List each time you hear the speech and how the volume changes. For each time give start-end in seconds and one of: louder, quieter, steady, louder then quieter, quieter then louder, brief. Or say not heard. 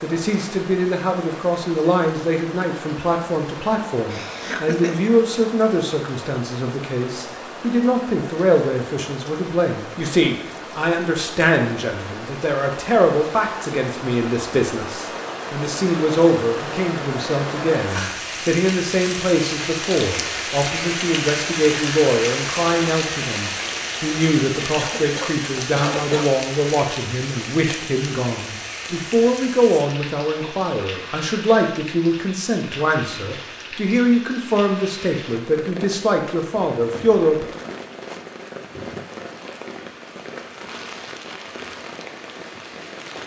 0.0-37.5 steady.